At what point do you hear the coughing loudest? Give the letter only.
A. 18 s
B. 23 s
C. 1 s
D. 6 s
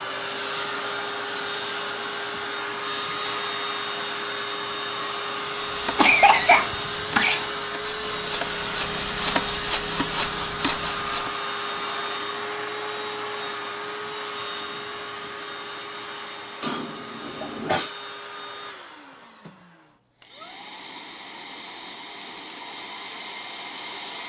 D.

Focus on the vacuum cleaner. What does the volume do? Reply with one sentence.
The loudness of the vacuum cleaner goes down.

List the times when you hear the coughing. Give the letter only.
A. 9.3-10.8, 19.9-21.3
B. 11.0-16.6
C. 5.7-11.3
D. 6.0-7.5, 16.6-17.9
D.